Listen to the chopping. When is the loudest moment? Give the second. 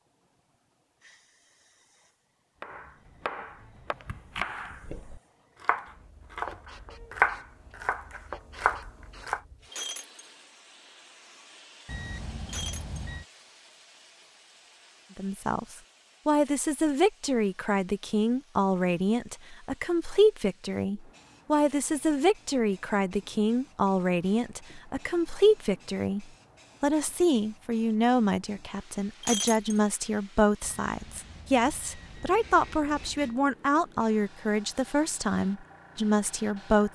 7 s.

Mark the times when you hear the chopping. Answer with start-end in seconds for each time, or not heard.
2.6-9.4.